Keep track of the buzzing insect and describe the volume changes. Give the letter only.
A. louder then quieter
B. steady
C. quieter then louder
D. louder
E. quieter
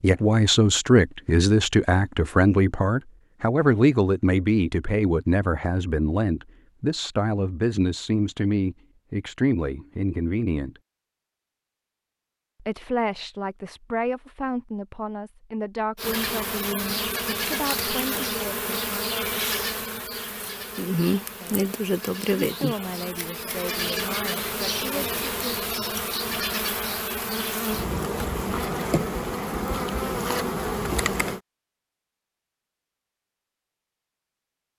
B.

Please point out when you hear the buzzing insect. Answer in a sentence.
You can hear the buzzing insect from 15.9 to 31.4 s.